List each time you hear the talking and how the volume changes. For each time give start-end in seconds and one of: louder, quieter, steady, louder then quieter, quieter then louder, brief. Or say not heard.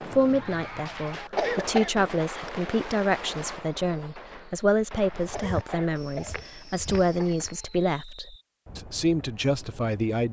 0.0-10.2 steady.